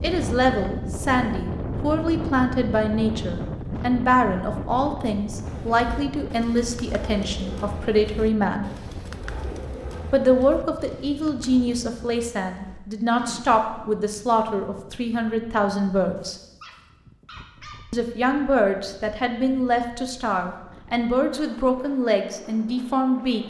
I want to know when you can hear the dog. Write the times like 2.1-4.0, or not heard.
16.1-17.9.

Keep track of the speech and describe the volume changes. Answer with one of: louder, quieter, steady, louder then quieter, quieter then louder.
steady.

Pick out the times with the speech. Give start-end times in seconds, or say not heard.
0.0-8.7, 10.1-16.4, 17.9-23.4.